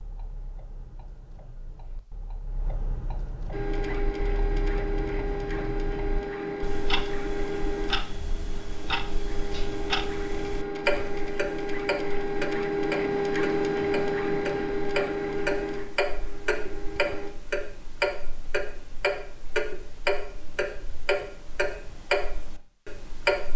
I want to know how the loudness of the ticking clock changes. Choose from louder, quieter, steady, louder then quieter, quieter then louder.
louder.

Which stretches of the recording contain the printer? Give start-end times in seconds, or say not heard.
3.5-17.3.